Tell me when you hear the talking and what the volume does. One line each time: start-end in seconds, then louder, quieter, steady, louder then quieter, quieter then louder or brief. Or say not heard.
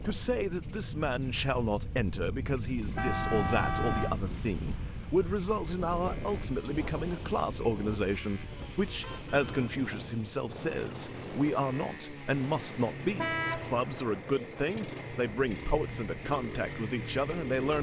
0.0-17.7 steady.